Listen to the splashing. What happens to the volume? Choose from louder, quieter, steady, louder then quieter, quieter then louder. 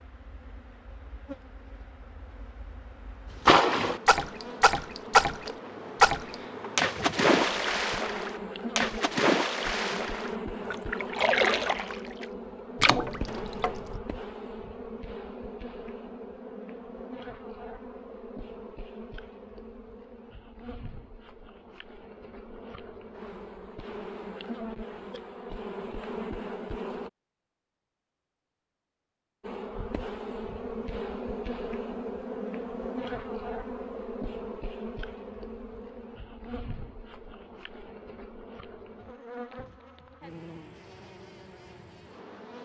quieter.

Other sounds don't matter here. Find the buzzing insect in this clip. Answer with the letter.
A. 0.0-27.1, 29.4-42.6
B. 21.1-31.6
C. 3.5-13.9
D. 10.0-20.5
A.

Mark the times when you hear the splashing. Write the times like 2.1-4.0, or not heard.
3.5-13.9.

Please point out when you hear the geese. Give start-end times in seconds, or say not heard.
not heard.